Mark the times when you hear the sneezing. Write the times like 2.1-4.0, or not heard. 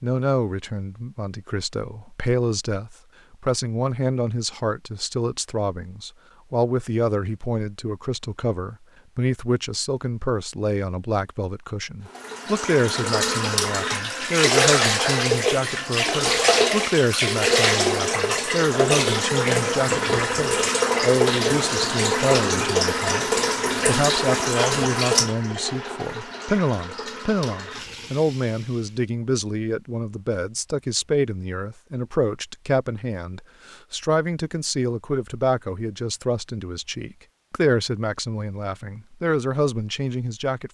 not heard.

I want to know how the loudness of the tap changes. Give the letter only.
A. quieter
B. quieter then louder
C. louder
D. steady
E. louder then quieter
A.